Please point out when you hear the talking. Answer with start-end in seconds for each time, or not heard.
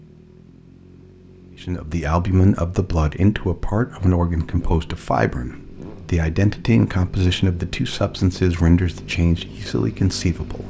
1.6-10.6.